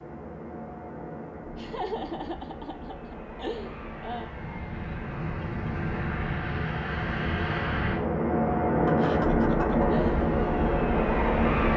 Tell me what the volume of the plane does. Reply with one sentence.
The loudness of the plane goes up.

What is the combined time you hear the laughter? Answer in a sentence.
You can hear the laughter for 4 seconds altogether.